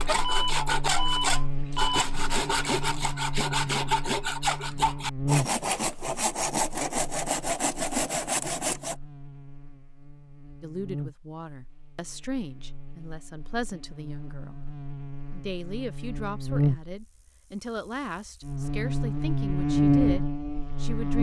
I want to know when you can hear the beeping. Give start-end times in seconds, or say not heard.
0.2-2.0.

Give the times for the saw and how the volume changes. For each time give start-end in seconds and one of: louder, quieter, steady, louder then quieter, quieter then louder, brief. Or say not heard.
0.0-8.9 steady.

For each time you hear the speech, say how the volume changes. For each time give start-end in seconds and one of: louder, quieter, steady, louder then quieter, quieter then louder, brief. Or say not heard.
10.6-21.1 steady.